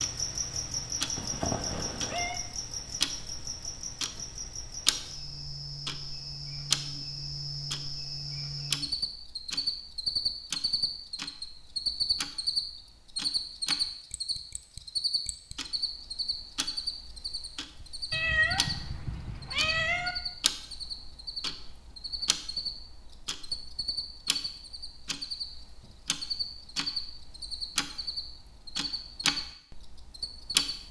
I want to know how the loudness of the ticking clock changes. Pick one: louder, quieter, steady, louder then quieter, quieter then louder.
quieter then louder.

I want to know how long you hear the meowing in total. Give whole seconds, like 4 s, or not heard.
3 s.